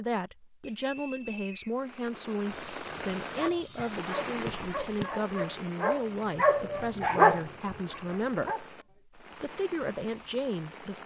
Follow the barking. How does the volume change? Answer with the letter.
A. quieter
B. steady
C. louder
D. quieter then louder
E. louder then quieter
E.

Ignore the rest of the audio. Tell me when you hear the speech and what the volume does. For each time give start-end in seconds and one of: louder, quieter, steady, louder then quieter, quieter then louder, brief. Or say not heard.
0.0-11.0 steady.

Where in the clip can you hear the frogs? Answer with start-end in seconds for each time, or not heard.
not heard.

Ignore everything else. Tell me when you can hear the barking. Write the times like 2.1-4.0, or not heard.
3.3-8.7.